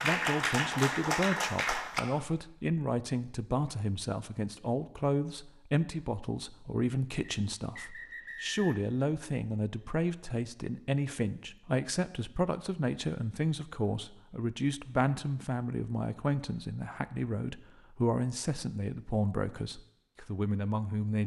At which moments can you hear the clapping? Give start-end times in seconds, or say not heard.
0.0-2.0.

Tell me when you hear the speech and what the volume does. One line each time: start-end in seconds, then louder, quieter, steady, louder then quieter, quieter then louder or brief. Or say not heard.
0.0-21.2 steady.